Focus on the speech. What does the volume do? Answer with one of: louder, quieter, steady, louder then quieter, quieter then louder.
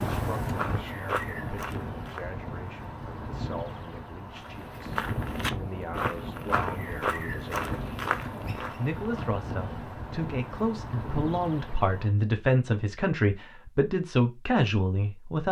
louder.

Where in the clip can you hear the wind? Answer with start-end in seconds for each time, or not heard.
0.0-12.1.